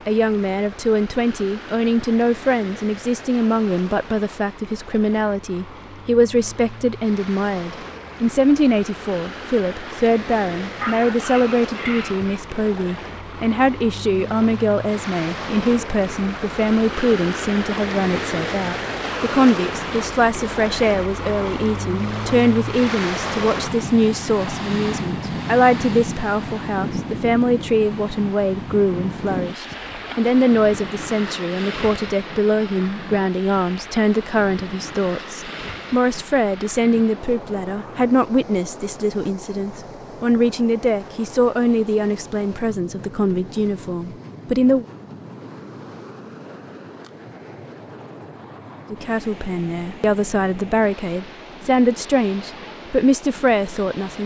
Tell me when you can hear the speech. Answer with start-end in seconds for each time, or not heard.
0.1-44.9, 48.9-54.2.